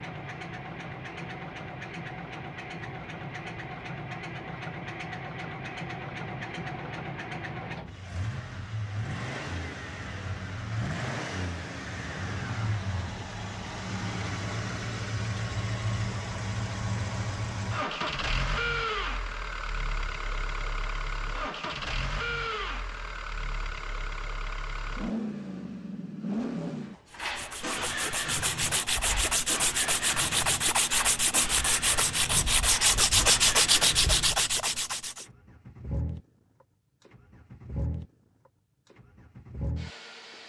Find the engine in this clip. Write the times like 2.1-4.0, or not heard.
0.0-40.4.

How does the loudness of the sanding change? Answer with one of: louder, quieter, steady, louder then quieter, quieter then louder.
louder.